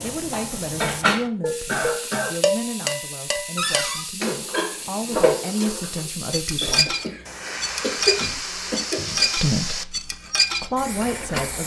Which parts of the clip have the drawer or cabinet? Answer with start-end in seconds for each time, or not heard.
3.5-4.0, 8.0-9.3.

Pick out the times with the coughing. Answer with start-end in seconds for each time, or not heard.
1.6-2.4, 6.5-9.3.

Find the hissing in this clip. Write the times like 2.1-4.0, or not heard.
0.0-11.6.